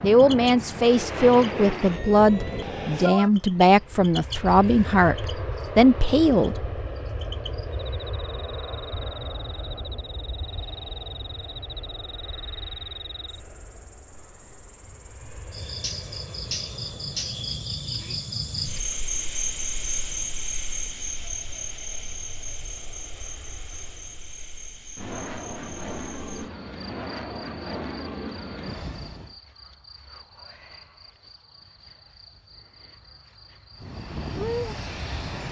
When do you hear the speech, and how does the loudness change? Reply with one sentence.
The speech can be heard from 0.0 to 6.8 s, at a steady volume.